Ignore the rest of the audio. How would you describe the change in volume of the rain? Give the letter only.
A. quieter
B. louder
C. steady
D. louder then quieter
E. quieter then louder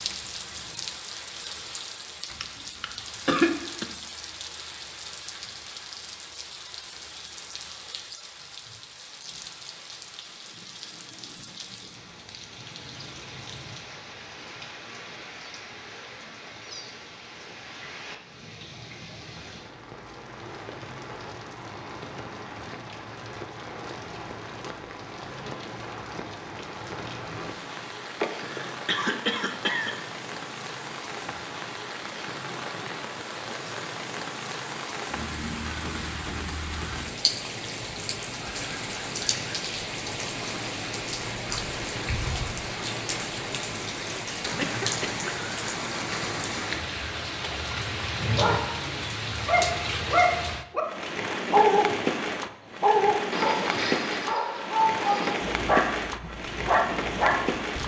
B.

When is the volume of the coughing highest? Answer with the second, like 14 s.
3 s.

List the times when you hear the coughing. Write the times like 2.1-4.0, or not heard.
2.3-3.9, 28.2-29.9, 44.4-45.2.